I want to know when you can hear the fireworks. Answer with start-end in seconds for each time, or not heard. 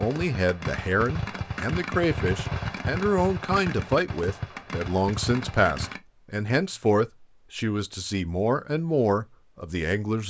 0.0-6.0.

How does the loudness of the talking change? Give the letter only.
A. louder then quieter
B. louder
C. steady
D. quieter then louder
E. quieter
C.